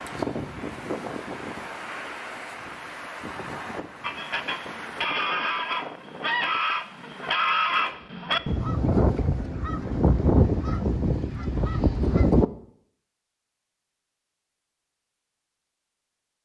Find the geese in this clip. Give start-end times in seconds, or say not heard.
4.0-12.4.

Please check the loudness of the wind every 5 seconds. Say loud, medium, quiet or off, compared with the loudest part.
loud, medium, off, off.